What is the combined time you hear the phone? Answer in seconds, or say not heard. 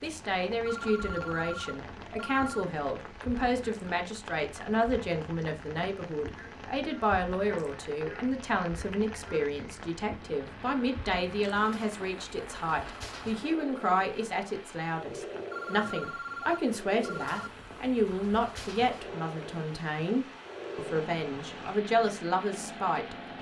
4 s.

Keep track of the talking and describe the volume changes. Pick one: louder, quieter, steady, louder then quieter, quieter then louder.
steady.